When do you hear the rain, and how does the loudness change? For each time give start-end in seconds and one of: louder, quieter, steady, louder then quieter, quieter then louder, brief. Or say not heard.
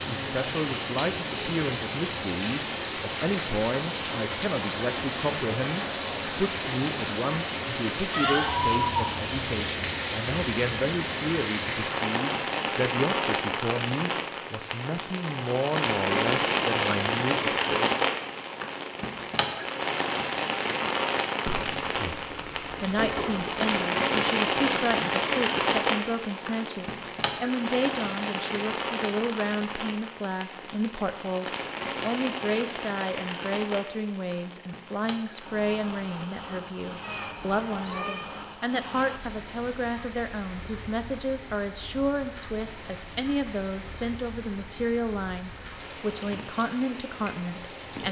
0.0-48.0 quieter.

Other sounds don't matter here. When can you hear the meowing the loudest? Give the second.
9 s.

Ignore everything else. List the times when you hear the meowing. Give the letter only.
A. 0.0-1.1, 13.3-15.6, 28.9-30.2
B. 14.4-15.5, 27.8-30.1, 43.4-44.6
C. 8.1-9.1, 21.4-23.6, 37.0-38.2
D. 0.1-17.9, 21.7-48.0
C.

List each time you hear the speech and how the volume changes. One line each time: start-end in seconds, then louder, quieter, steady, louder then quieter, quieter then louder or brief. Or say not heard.
0.1-17.9 steady
21.7-48.0 steady.